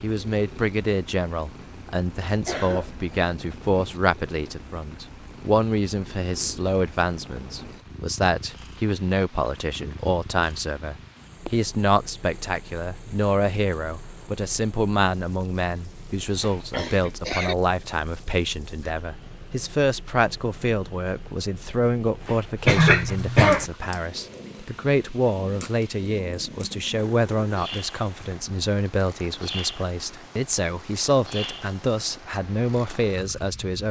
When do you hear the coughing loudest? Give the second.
23 s.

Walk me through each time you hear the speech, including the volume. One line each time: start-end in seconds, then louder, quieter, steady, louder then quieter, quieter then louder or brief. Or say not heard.
0.0-33.8 steady.